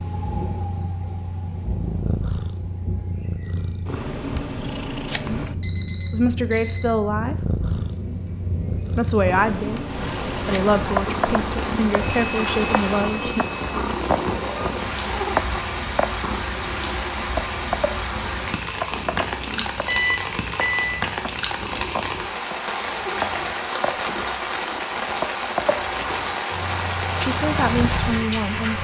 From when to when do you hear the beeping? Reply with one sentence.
You can hear the beeping from 5.6 to 7.0 s, from 12.0 to 13.8 s and from 19.9 to 20.8 s.